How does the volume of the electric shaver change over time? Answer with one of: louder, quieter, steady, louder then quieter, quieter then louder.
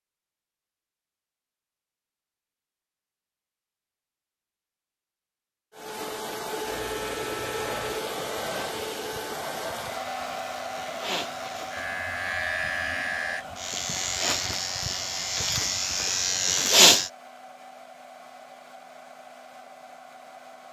quieter then louder.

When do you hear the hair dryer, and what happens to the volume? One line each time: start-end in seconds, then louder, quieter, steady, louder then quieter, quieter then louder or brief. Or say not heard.
5.7-20.6 quieter.